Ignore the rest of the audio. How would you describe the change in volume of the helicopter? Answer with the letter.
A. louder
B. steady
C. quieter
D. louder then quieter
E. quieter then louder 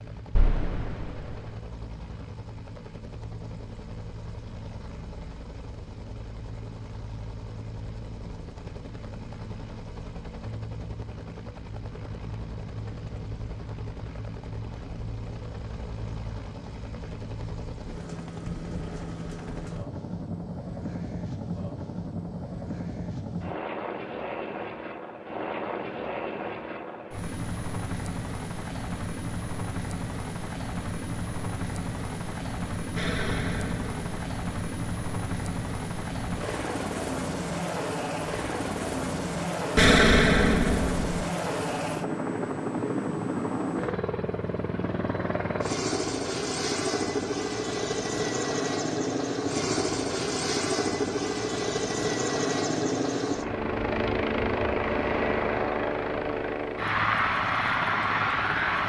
A.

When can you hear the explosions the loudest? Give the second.
40 s.